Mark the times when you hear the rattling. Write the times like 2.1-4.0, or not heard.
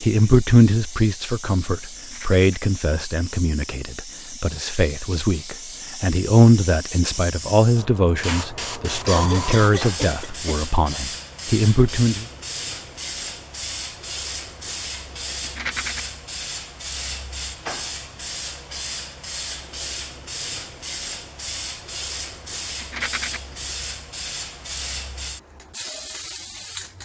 1.9-2.6, 15.4-16.1, 22.8-23.4.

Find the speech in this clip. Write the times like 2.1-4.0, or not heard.
0.0-12.2.